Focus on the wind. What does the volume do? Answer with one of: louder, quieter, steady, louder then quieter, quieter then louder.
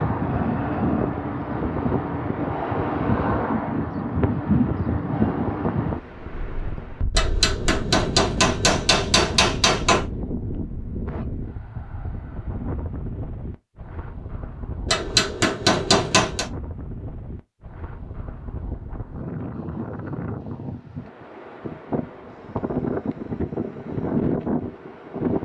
quieter then louder.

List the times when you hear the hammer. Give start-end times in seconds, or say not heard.
7.2-10.1, 14.8-16.5.